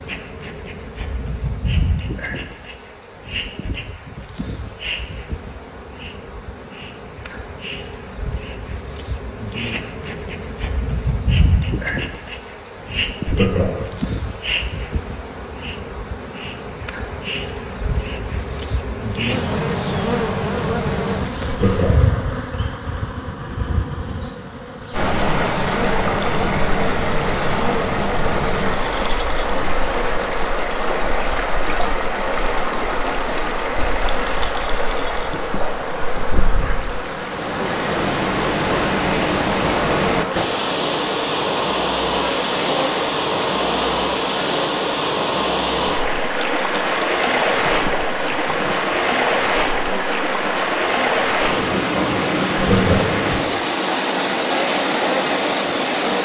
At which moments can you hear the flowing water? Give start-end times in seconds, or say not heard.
24.9-56.1.